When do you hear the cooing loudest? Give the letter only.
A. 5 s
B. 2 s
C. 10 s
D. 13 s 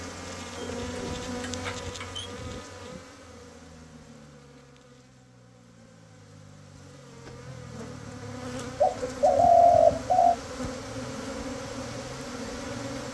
C.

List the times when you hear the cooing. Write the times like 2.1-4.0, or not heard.
0.6-2.3, 8.8-10.3.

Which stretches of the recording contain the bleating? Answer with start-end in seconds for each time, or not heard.
not heard.